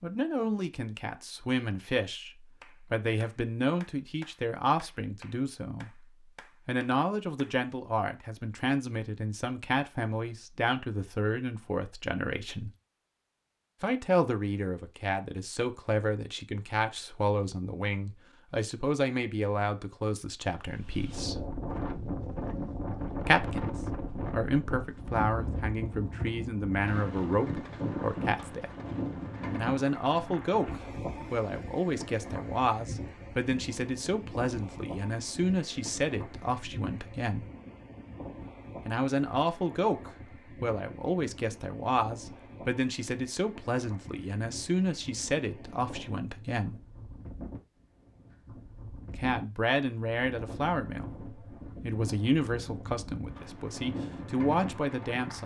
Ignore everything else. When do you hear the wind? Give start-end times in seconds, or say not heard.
20.6-55.4.